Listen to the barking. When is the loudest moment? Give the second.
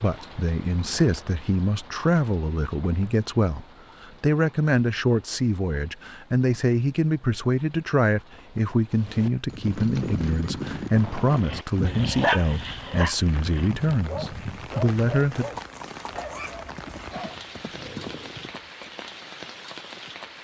12 s.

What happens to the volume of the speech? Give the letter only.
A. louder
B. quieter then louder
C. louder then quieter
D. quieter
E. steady
E.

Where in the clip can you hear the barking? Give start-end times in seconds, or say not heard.
11.3-18.5.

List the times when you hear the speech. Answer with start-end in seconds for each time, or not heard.
0.0-15.6.